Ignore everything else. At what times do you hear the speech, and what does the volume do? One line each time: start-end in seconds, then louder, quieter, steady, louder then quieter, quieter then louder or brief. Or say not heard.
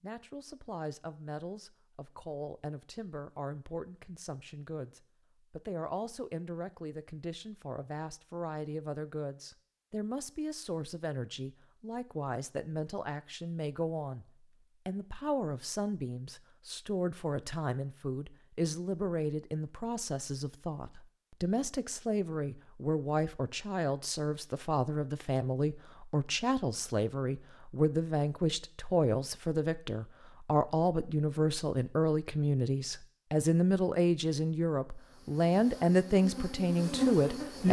0.0-37.6 louder.